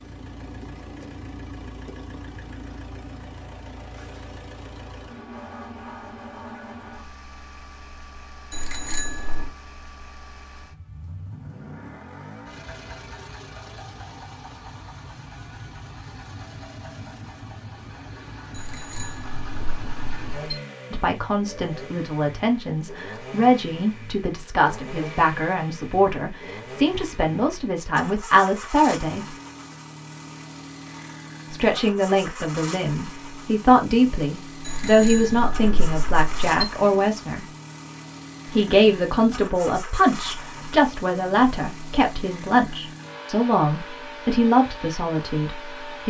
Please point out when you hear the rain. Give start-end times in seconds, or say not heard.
not heard.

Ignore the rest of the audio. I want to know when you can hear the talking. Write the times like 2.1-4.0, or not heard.
20.9-29.2, 31.5-37.5, 38.5-46.0.